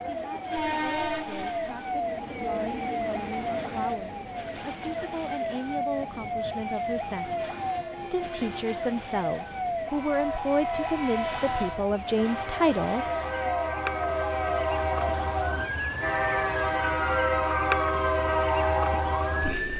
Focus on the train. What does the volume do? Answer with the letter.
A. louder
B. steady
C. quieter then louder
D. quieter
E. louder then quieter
C.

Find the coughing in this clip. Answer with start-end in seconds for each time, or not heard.
not heard.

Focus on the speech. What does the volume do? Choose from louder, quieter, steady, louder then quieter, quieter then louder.
louder.